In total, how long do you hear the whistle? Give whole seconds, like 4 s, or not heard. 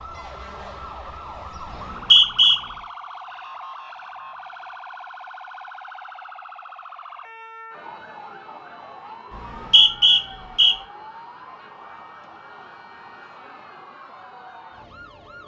2 s.